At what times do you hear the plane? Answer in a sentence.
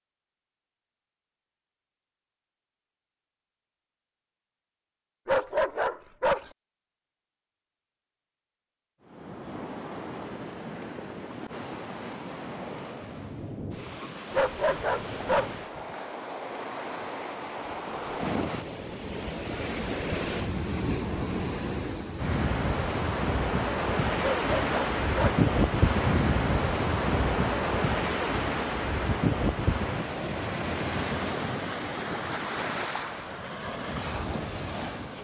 You can't hear the plane here.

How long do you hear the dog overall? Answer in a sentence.
The dog can be heard for 4 seconds in total.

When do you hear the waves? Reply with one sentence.
You can hear the waves from 9.0 to 35.1 s.